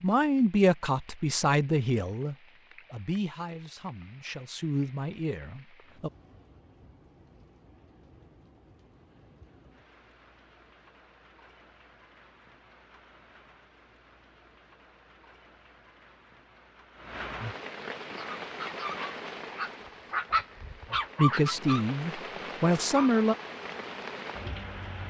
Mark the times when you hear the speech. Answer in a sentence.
The speech can be heard from 0.0 to 6.1 s and from 21.1 to 23.4 s.